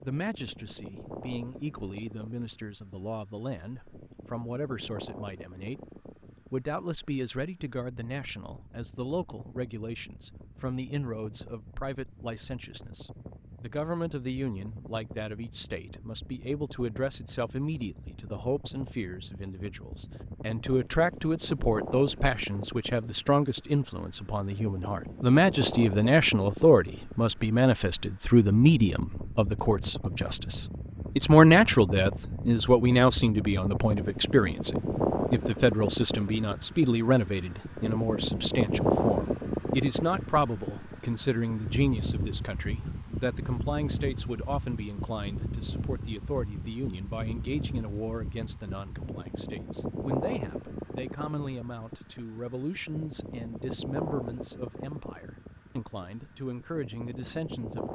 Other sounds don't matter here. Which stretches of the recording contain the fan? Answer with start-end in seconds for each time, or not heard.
0.0-57.8.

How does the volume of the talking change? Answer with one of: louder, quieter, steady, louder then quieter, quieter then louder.
louder then quieter.